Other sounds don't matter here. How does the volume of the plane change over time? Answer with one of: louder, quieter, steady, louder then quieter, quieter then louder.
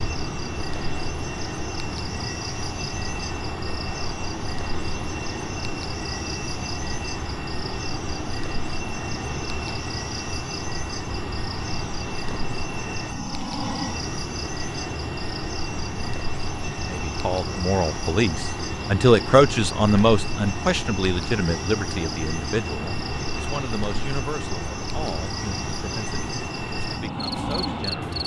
steady.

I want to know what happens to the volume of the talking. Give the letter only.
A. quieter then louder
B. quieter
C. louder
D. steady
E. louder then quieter
B.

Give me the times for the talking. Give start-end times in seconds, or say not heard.
16.9-28.1.